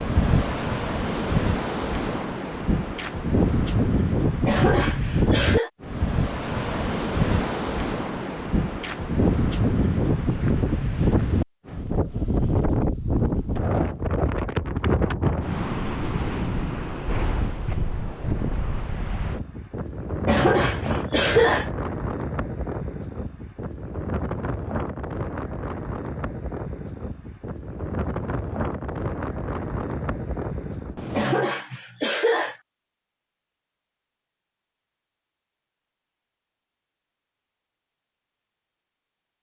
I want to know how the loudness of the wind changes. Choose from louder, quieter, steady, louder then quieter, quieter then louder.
quieter.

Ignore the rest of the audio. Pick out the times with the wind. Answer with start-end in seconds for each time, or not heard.
0.0-31.3.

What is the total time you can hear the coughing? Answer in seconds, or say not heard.
4 s.